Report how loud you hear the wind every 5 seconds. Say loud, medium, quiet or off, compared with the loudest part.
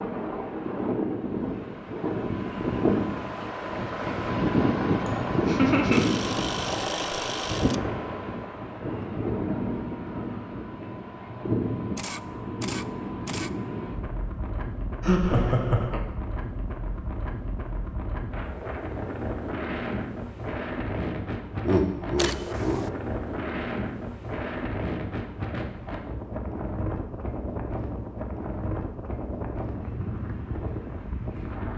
loud, loud, medium, medium, medium, medium, medium.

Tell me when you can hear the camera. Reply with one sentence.
You can hear the camera from 5.9 to 7.8 s, from 11.9 to 13.5 s and from 22.1 to 22.9 s.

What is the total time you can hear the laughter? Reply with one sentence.
You can hear the laughter for 3 seconds altogether.